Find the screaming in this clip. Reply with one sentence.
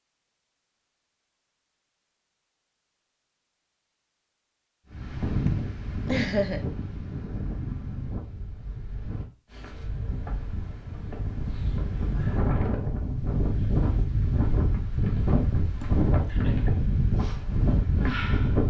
The screaming can't be heard in this clip.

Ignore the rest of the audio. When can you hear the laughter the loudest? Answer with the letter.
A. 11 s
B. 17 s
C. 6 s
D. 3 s
C.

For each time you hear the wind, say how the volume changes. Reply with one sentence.
You can hear the wind from 4.9 to 18.6 s, getting quieter then louder.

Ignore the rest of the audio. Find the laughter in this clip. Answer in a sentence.
You can hear the laughter from 5.5 to 6.6 s and from 15.8 to 16.8 s.